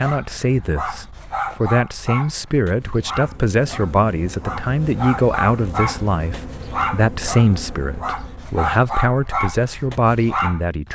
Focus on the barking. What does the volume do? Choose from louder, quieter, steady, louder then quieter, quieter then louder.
quieter then louder.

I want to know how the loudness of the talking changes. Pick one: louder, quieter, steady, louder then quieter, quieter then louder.
steady.